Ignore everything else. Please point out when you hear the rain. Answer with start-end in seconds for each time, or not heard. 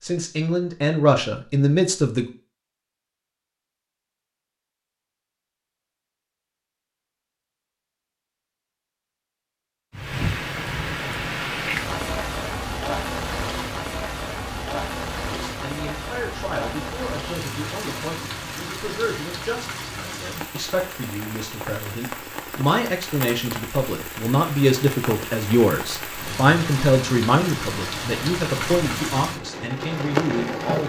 9.9-30.8.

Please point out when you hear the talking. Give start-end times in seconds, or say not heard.
0.0-2.2, 15.2-30.8.